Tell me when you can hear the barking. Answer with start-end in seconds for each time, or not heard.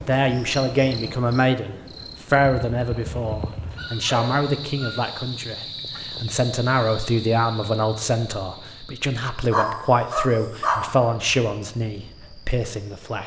3.8-5.0, 9.4-10.9.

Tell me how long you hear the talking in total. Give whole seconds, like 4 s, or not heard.
13 s.